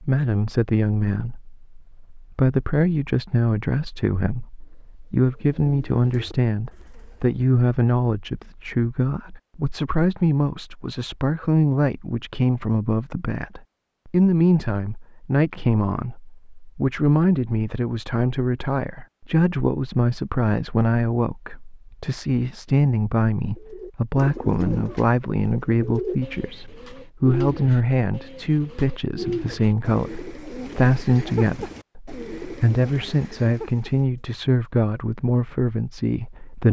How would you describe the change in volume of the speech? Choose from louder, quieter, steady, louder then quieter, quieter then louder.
steady.